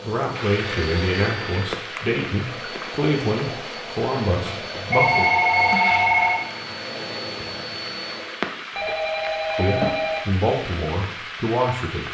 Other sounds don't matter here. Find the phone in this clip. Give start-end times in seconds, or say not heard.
0.6-1.7, 4.5-6.5, 8.8-10.2.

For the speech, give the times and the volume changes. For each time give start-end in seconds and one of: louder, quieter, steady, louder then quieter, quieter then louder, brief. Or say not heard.
0.0-5.3 steady
9.6-12.0 brief.